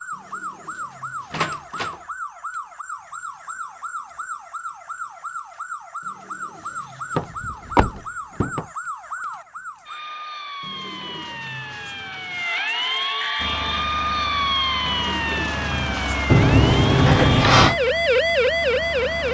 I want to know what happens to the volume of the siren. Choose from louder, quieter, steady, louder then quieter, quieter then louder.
louder.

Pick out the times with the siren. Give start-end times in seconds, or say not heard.
0.0-19.2.